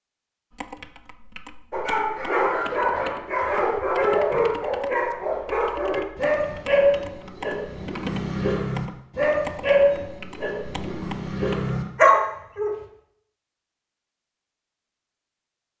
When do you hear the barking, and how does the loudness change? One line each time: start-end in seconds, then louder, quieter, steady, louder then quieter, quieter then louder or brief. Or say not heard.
1.7-12.7 steady.